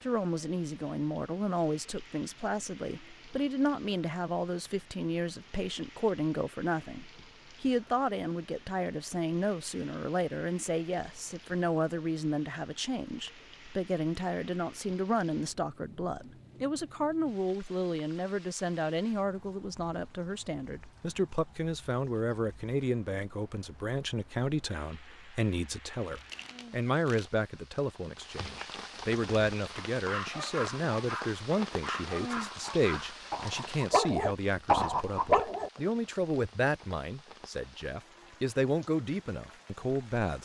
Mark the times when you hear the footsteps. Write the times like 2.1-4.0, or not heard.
not heard.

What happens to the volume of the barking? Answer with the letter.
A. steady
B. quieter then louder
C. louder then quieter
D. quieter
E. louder
E.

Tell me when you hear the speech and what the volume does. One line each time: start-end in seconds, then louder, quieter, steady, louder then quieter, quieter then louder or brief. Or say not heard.
0.0-40.4 steady.